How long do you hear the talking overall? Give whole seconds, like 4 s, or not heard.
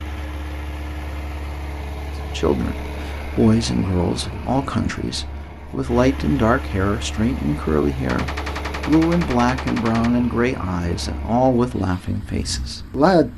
11 s.